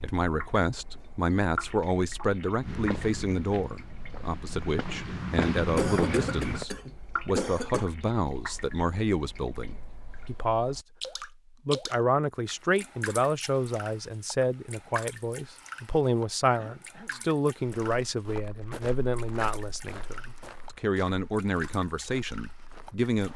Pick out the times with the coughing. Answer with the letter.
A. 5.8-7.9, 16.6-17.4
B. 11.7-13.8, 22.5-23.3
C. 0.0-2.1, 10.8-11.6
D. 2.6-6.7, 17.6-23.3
A.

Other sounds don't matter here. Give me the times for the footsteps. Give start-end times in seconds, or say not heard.
2.6-6.7, 17.6-23.3.